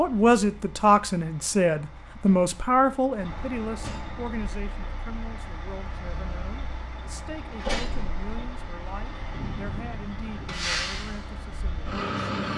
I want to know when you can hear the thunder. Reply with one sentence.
You can hear the thunder from 9.3 to 11.1 s.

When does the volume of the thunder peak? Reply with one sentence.
The volume of the thunder peaks at 10 seconds.